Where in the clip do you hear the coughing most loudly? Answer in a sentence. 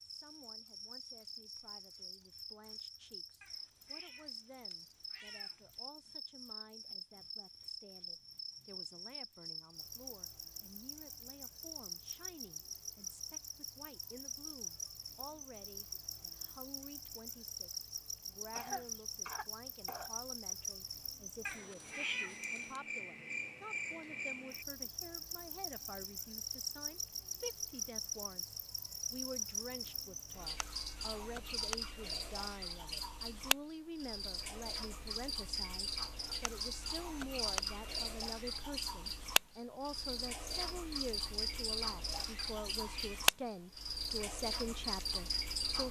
The volume of the coughing peaks at 19 seconds.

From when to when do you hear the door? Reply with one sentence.
The door can't be heard in this clip.